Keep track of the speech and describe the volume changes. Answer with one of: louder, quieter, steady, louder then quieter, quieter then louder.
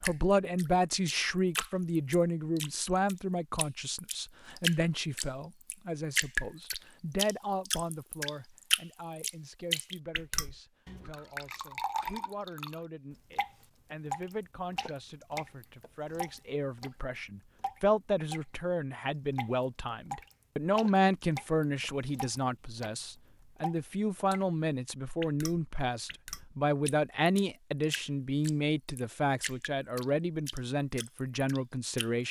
quieter then louder.